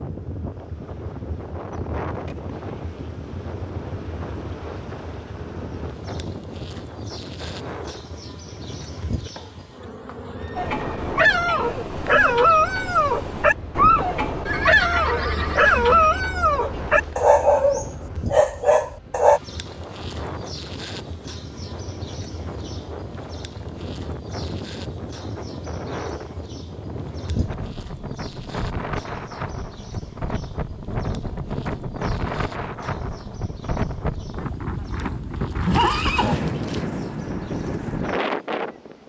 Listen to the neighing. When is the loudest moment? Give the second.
36 s.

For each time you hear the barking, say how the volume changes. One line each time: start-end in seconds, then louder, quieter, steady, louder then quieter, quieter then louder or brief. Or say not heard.
10.6-19.4 steady.